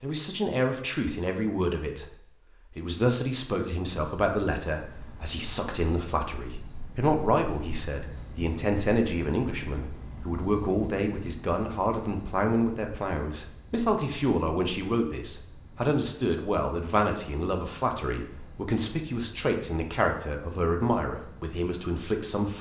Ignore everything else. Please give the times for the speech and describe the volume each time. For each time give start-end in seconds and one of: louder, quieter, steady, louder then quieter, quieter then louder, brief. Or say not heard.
0.0-22.5 steady.